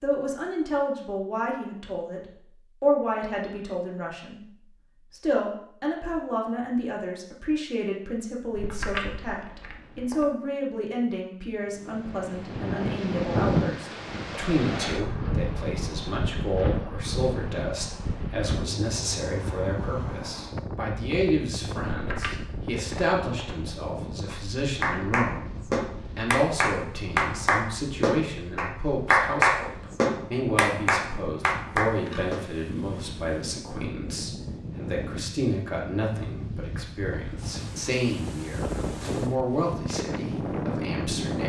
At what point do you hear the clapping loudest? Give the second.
29 s.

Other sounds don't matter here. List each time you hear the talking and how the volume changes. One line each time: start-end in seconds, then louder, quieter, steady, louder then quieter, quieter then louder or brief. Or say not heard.
0.0-41.4 steady.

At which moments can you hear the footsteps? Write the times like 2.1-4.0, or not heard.
not heard.